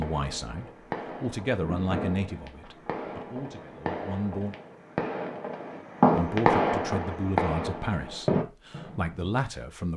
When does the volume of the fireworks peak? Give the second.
6 s.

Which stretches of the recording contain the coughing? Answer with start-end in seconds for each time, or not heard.
not heard.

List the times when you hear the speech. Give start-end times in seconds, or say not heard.
0.0-4.5, 6.1-9.9.